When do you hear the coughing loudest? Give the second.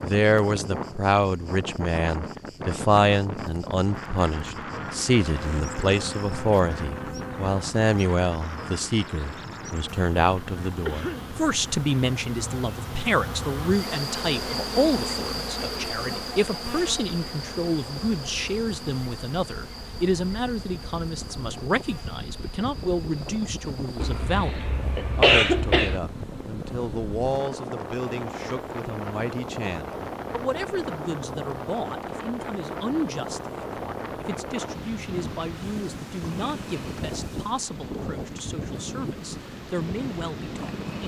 25 s.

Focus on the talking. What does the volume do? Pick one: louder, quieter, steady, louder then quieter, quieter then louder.
quieter.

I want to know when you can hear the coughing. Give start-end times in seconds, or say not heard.
10.8-11.3, 24.0-26.0.